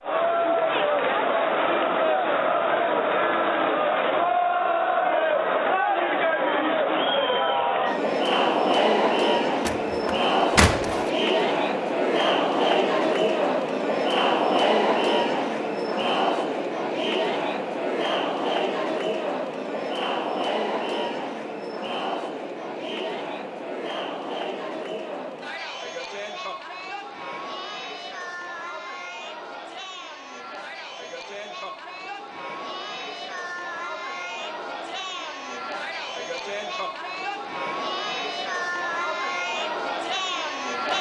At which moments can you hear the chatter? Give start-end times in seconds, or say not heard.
0.0-40.9.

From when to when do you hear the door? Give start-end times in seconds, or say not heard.
9.7-11.1.